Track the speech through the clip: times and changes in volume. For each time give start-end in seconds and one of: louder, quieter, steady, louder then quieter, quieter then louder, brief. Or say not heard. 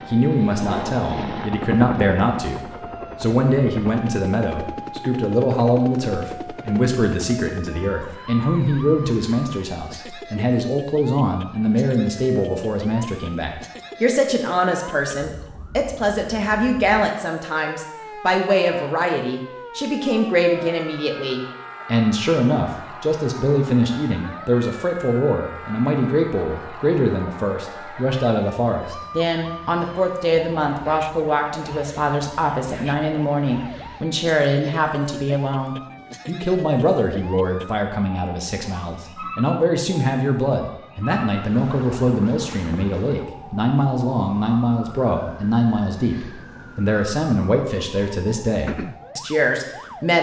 0.1-50.1 steady.